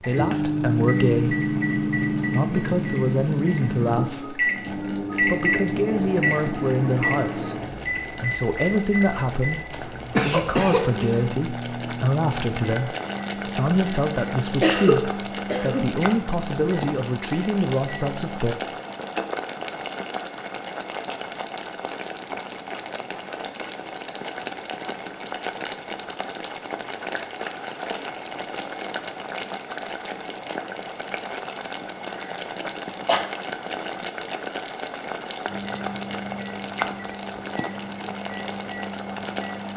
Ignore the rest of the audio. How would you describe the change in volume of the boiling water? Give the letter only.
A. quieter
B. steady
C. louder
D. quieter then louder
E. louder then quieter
C.